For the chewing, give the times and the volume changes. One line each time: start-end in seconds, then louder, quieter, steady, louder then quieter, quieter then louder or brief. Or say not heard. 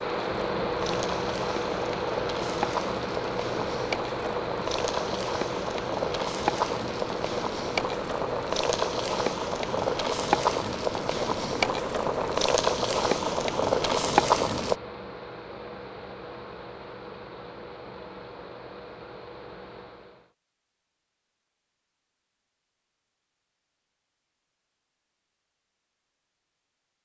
not heard.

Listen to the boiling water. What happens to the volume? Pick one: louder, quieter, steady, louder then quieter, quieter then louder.
louder.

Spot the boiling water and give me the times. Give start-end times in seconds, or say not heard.
0.0-14.8.